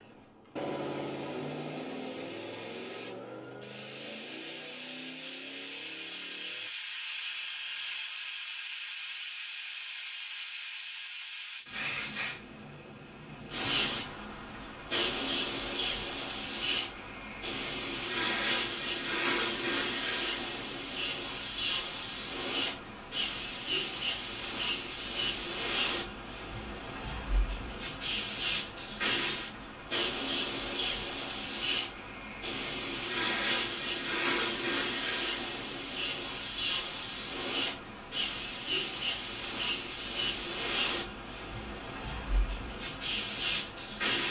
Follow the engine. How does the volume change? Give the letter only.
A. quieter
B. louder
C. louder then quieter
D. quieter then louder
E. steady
A.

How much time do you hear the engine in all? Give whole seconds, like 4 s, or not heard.
7 s.